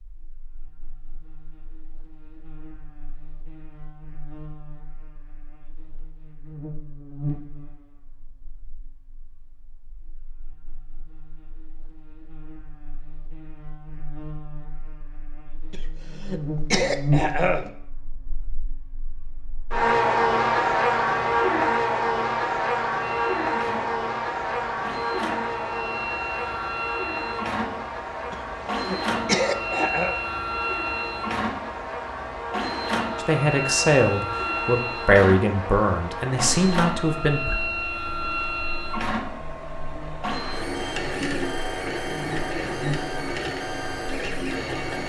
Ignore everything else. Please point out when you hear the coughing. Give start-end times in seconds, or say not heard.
15.7-17.7, 28.3-30.1.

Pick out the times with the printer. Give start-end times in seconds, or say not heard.
23.0-45.0.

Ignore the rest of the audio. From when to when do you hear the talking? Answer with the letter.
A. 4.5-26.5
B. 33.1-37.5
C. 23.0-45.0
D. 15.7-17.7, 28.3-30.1
B.